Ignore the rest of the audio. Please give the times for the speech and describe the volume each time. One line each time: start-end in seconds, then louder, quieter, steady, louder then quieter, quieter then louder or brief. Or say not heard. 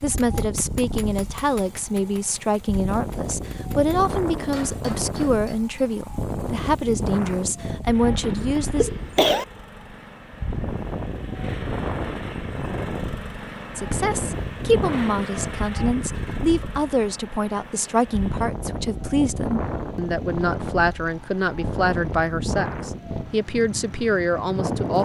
0.0-8.9 steady
13.8-24.9 steady.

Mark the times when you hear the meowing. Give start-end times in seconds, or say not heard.
not heard.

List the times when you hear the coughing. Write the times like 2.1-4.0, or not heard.
8.2-9.4.